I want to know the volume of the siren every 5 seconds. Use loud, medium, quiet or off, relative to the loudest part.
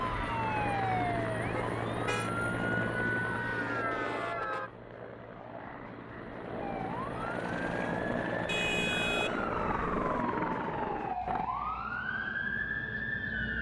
loud, medium, loud.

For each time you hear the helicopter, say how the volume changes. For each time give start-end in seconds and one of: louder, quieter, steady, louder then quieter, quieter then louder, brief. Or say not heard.
0.0-11.5 quieter then louder.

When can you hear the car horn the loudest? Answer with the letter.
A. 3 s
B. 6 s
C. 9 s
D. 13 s
C.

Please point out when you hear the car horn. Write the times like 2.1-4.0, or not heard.
1.5-2.3, 8.4-10.2.